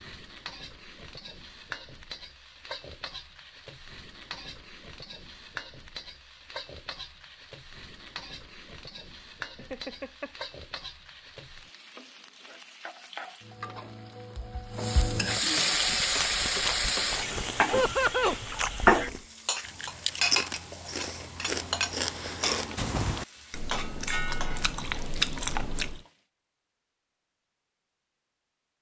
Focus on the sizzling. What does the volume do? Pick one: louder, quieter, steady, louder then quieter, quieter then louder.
louder then quieter.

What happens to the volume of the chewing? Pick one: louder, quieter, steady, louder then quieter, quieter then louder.
louder.